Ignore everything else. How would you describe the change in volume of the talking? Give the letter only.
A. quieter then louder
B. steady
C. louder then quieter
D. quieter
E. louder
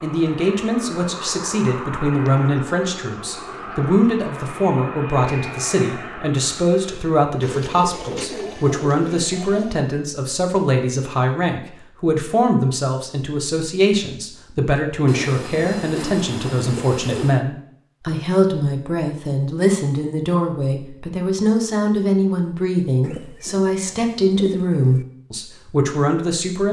B.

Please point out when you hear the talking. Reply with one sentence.
The talking can be heard from 0.0 to 26.6 s.